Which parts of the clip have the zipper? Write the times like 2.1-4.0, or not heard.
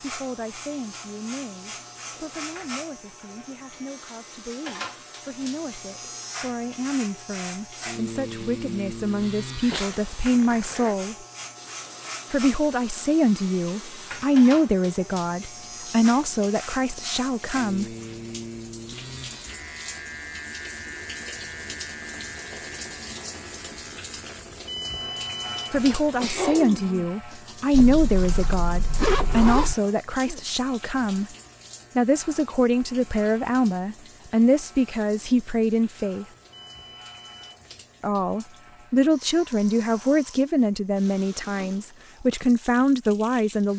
9.6-11.0, 27.7-29.8.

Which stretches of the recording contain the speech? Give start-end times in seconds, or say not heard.
0.0-11.2, 12.3-17.9, 25.7-31.3, 31.9-36.2, 38.0-43.7.